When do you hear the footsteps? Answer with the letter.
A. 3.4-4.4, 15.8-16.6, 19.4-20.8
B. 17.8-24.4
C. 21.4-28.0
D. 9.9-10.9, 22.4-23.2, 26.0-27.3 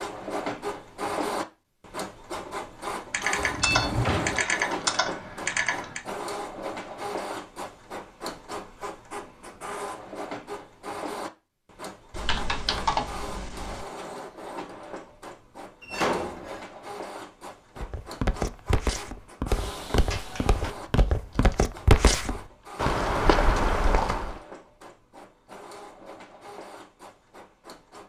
B.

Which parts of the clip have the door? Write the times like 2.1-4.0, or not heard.
3.4-4.4, 15.8-16.6, 19.4-20.8.